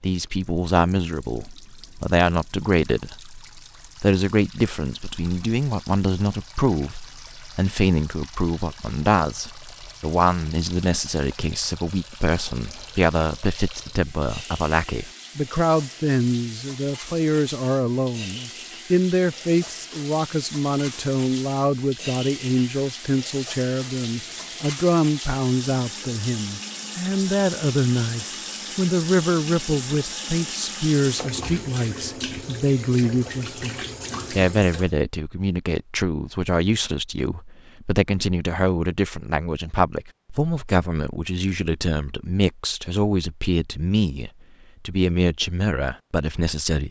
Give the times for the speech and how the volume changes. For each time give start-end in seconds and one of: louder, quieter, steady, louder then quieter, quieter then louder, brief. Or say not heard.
0.0-46.8 steady.